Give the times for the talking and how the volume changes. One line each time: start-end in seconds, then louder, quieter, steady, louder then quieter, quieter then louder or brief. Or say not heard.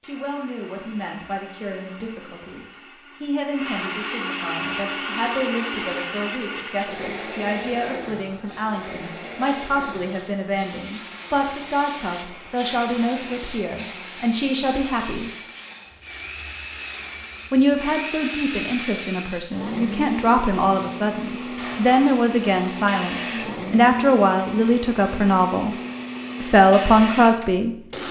0.0-15.3 louder
17.5-25.8 louder
26.4-28.0 brief.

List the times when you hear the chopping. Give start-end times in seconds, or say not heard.
not heard.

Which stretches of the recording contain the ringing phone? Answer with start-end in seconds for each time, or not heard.
not heard.